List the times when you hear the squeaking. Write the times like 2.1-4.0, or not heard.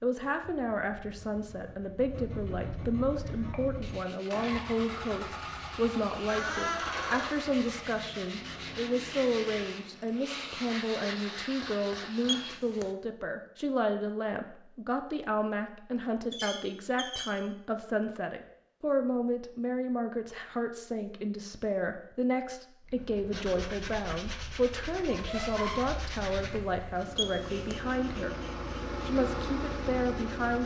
6.2-7.3, 16.3-17.3, 25.1-25.9.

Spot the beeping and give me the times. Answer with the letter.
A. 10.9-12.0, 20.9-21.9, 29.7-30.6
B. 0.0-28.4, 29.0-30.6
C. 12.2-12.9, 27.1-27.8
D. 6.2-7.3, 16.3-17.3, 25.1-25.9
C.